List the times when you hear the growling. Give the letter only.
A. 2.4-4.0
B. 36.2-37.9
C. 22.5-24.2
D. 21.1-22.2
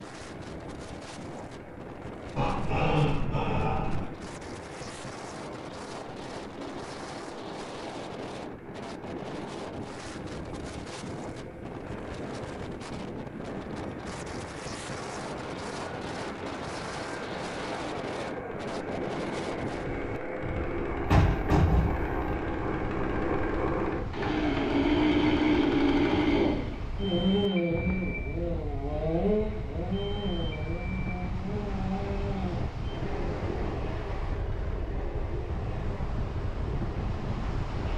A.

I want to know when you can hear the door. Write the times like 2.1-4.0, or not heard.
21.1-22.2.